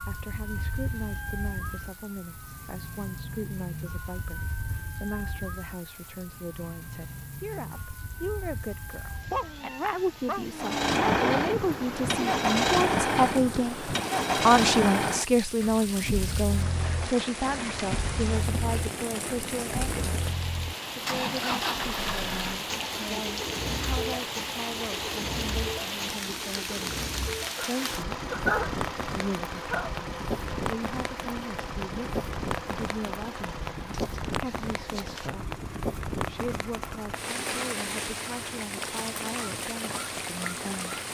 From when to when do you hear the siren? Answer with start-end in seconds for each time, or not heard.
0.0-10.6.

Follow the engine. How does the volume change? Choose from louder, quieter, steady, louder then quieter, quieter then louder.
quieter.